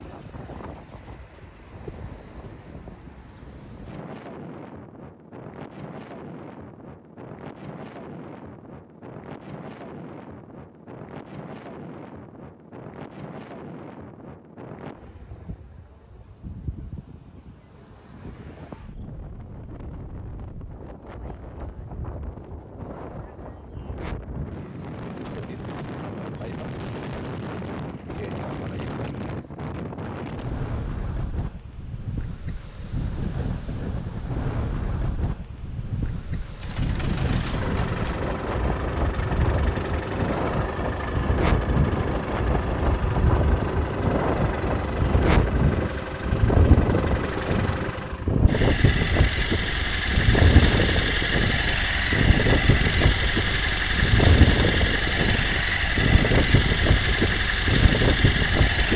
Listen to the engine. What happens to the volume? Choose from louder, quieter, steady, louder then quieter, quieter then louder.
louder.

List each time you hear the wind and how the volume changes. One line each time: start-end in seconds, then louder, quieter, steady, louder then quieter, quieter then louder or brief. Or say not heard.
0.0-58.9 louder.